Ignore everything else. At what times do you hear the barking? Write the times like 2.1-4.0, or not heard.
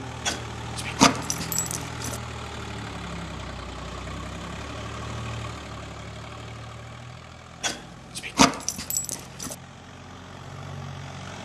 0.2-2.2, 7.6-9.6.